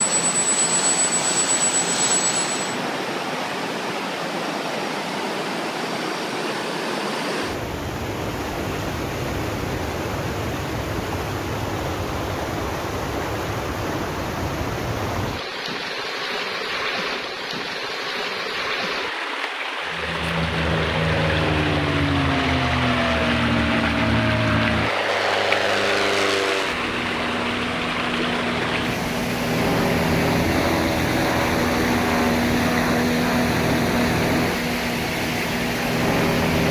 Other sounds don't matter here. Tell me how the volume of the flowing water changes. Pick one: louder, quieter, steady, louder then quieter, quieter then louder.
steady.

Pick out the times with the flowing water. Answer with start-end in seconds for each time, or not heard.
0.0-36.6.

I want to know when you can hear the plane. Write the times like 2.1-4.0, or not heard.
0.0-2.8, 19.9-36.6.